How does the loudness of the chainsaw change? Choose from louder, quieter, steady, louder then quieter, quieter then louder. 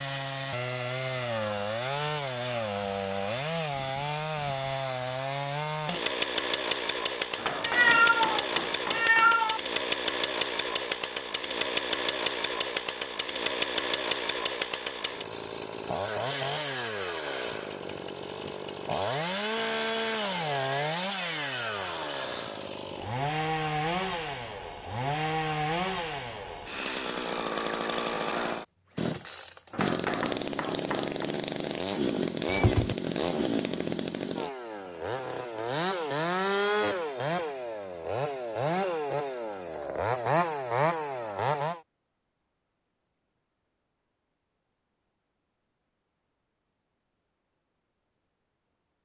steady.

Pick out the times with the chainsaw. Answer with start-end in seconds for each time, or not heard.
0.0-41.8.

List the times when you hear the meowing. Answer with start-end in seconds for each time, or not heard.
7.6-9.6, 32.5-33.0.